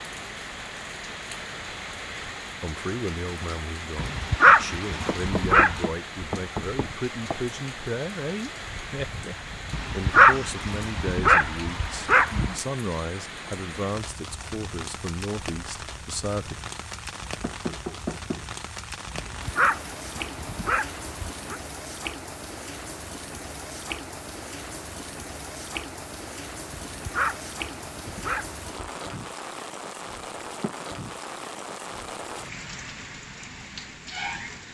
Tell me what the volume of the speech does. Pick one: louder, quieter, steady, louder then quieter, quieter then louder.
steady.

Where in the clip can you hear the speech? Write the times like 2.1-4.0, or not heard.
2.6-16.6.